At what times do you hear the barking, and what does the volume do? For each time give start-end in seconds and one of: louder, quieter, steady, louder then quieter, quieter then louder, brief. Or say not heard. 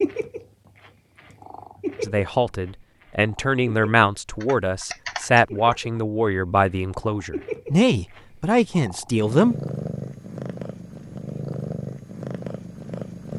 not heard.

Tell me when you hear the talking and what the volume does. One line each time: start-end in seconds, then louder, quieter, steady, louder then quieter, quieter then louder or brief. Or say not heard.
2.0-9.6 steady.